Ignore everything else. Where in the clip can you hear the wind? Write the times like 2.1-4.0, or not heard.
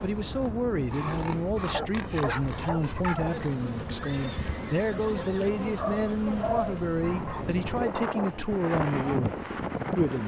0.0-10.2.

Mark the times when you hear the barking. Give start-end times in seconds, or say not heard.
0.9-3.5, 5.8-7.5.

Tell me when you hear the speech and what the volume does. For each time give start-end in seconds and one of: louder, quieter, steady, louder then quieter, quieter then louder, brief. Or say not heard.
0.0-10.2 steady.